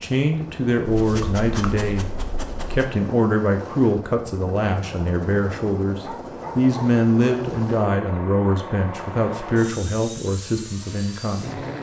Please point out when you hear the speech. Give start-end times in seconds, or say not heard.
0.0-11.6.